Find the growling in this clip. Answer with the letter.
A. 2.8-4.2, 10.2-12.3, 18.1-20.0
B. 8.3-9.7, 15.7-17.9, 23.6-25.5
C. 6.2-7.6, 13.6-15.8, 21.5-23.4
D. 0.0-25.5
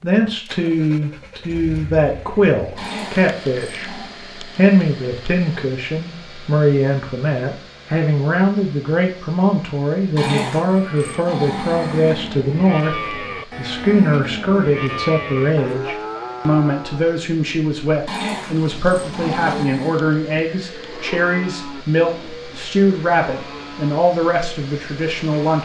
A.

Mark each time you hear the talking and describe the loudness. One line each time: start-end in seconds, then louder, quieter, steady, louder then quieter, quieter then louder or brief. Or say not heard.
0.0-25.5 steady.